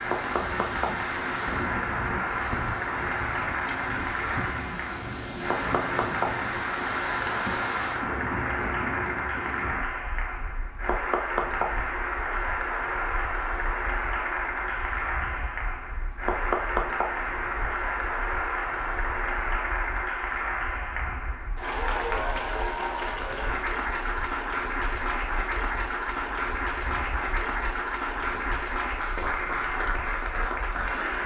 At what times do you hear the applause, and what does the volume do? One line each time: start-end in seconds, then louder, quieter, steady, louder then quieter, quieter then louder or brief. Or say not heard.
0.0-31.2 steady.